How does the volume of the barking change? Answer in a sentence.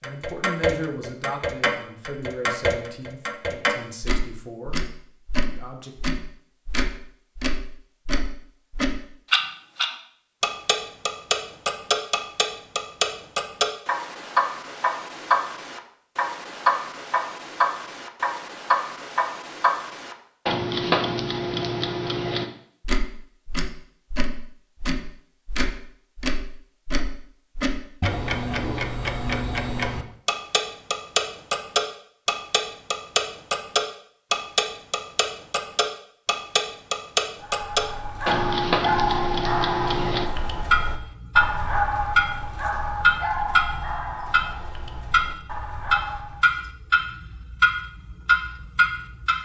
The volume of the barking goes down.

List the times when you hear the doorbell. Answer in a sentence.
The doorbell can't be heard in this clip.